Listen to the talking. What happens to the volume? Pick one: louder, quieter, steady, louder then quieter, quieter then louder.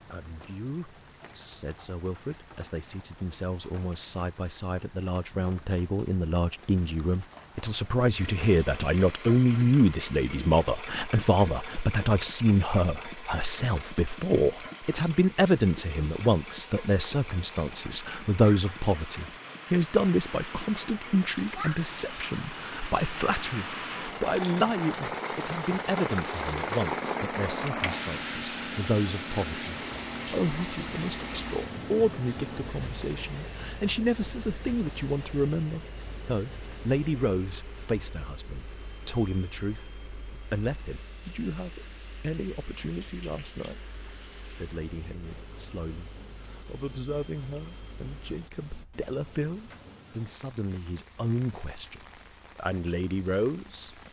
quieter.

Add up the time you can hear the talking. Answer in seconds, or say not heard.
54 s.